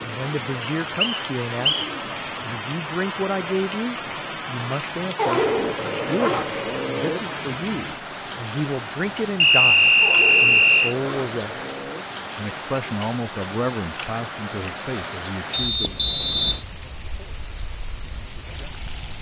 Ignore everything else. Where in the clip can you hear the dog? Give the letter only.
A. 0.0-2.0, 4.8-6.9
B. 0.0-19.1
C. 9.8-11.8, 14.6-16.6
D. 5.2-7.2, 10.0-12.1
D.